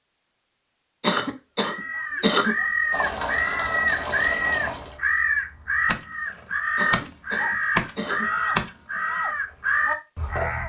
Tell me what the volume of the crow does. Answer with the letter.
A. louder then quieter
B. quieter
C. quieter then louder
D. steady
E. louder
D.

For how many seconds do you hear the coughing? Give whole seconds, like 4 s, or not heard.
3 s.